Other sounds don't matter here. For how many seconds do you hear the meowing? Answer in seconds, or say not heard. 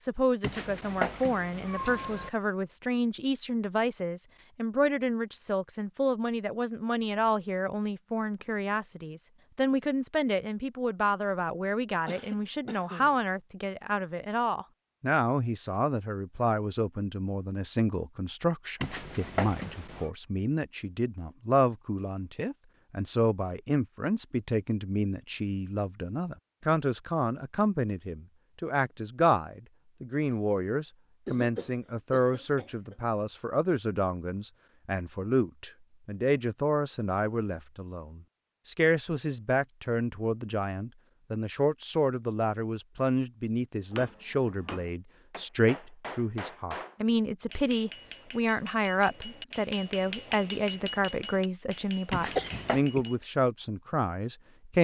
4 s.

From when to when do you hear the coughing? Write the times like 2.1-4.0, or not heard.
12.1-13.2, 31.2-33.0, 52.4-53.0.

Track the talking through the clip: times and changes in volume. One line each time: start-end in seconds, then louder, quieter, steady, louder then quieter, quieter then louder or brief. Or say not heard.
0.0-54.7 steady.